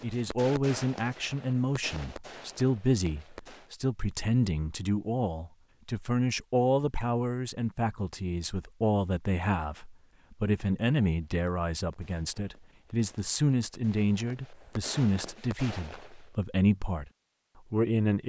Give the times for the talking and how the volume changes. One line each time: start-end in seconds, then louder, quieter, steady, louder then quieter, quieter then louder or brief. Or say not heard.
0.0-17.1 steady
17.7-18.2 brief.